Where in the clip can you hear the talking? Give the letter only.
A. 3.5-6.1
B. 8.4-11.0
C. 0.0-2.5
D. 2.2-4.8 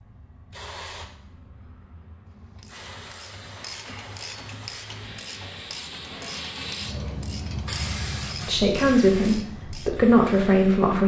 B.